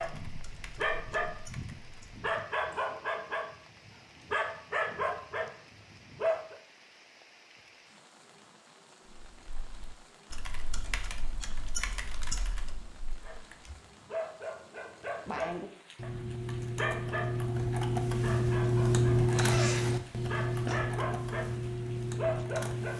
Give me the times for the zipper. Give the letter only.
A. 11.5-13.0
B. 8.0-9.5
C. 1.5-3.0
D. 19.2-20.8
D.